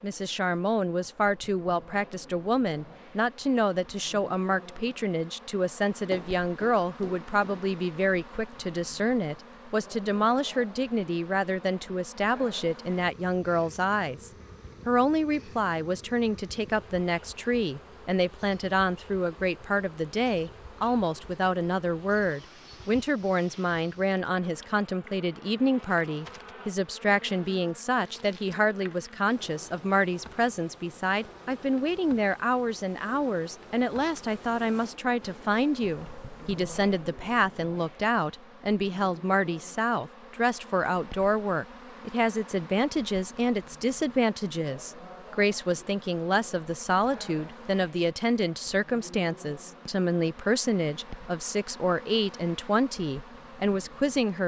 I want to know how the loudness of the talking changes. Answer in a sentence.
The volume of the talking stays about the same.